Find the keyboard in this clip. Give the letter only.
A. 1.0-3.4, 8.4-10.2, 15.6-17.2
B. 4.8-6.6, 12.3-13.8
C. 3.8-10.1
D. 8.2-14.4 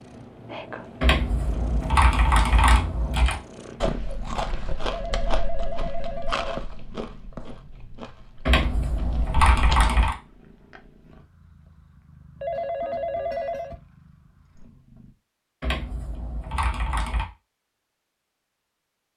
A.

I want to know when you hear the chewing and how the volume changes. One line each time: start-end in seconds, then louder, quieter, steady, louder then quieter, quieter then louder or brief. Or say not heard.
3.8-10.1 quieter.